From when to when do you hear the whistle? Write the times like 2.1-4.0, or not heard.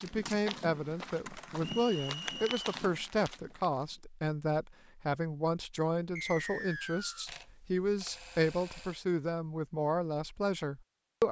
1.6-2.6, 6.2-7.2.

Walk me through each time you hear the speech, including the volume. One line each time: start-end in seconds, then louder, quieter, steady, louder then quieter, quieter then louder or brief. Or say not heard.
0.0-11.2 steady.